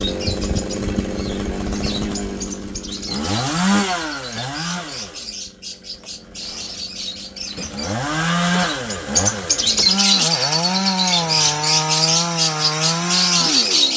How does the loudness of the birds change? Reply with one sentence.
The loudness of the birds goes up.